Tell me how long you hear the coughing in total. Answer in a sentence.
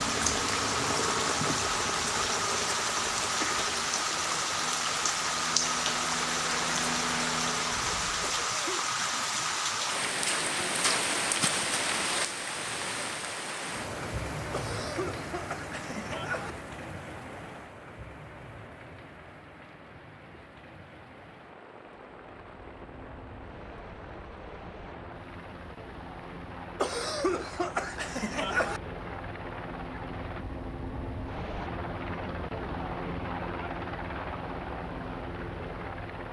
You can hear the coughing for 5 seconds altogether.